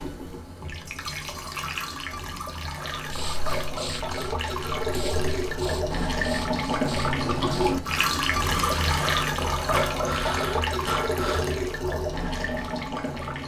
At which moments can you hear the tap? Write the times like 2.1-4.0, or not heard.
0.0-13.4.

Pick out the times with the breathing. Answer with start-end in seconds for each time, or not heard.
3.0-11.4.